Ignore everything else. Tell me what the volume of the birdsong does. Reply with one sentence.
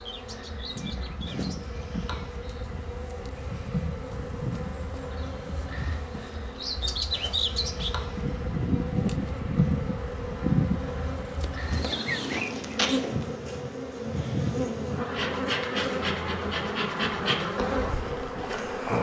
The volume of the birdsong goes up.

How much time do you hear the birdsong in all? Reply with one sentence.
The birdsong can be heard for 13 seconds in total.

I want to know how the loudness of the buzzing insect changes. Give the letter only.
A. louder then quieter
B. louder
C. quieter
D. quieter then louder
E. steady
B.